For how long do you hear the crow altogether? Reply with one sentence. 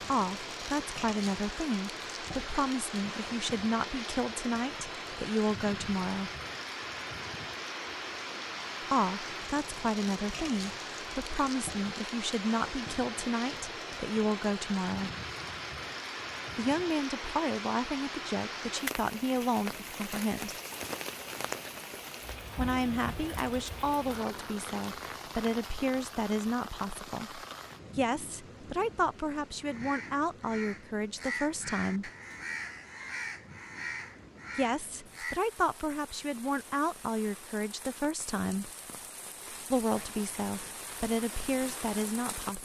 You can hear the crow for 6 seconds altogether.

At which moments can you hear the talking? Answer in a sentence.
The talking can be heard from 0.1 to 6.3 s, from 8.9 to 15.1 s, from 16.6 to 20.6 s, from 22.6 to 32.1 s, from 34.5 to 38.7 s and from 39.7 to 42.6 s.